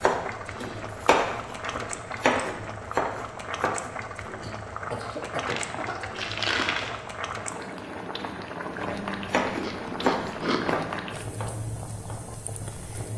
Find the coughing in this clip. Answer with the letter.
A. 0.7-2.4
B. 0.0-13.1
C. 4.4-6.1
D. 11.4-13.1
C.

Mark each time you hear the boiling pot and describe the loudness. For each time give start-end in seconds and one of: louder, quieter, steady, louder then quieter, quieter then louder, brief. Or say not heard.
0.0-13.1 steady.